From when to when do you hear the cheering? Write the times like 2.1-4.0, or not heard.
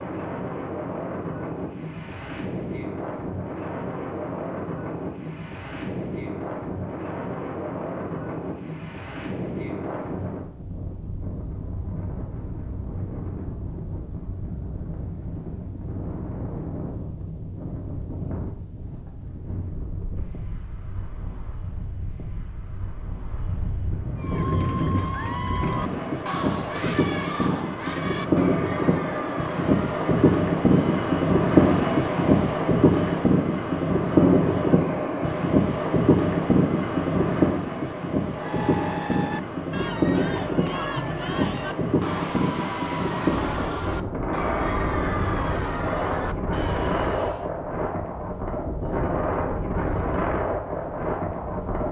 24.1-33.4, 38.3-47.5.